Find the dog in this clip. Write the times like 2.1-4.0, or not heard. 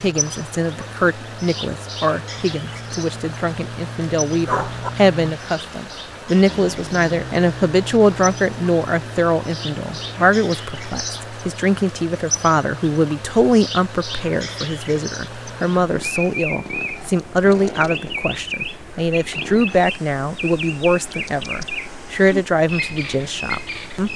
4.5-4.9.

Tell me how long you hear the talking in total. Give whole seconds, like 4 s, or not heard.
24 s.